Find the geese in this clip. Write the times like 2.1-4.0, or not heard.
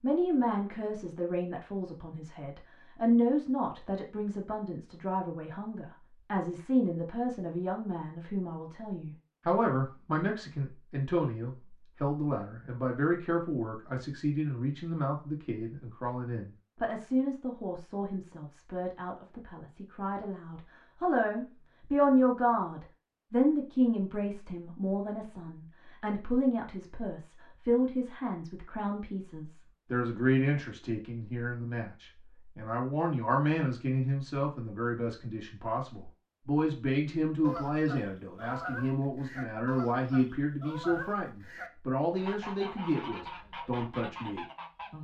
37.4-44.9.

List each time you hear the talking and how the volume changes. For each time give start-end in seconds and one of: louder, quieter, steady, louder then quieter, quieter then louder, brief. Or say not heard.
0.0-44.9 steady.